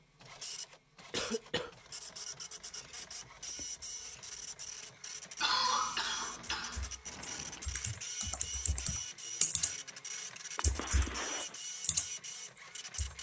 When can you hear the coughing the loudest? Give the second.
6 s.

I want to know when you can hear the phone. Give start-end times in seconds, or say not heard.
not heard.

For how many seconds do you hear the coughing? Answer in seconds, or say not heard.
3 s.